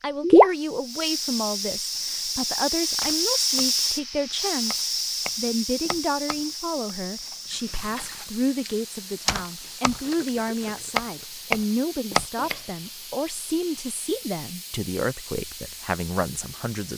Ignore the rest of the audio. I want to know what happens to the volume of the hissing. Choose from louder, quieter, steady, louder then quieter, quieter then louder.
quieter.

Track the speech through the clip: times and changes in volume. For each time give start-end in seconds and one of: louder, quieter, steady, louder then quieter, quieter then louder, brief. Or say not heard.
0.0-16.9 steady.